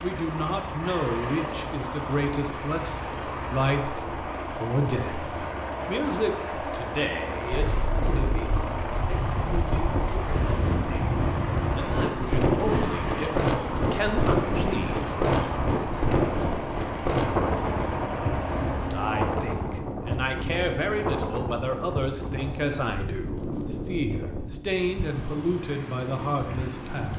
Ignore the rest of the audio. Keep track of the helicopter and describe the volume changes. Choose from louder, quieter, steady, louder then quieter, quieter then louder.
steady.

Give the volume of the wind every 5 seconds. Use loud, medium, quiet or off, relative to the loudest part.
off, medium, loud, loud, medium, medium.